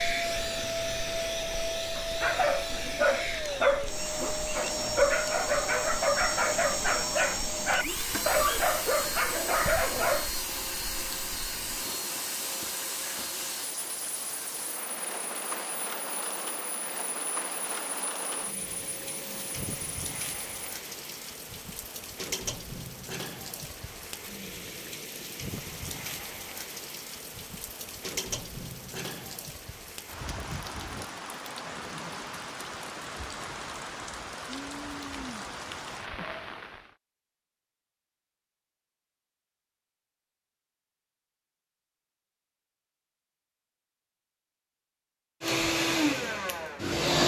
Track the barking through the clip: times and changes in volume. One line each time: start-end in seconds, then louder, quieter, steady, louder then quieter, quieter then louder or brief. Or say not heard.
1.9-10.3 steady.